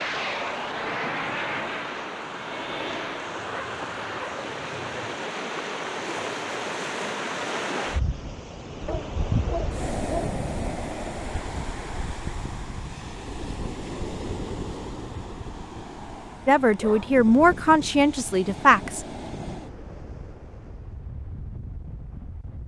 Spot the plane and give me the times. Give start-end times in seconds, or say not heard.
0.0-3.4.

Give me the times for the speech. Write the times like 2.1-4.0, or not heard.
16.4-19.0.